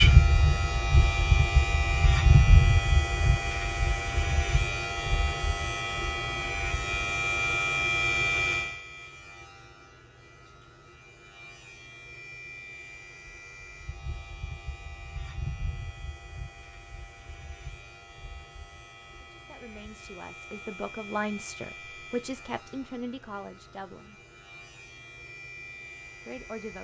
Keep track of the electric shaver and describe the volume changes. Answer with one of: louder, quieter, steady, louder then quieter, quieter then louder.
quieter.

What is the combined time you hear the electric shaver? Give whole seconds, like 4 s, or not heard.
27 s.